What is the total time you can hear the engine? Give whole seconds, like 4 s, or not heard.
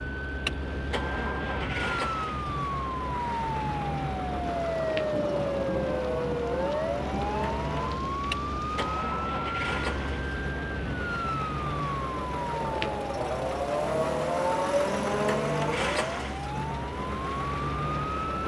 18 s.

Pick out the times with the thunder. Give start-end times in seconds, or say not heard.
4.4-9.1.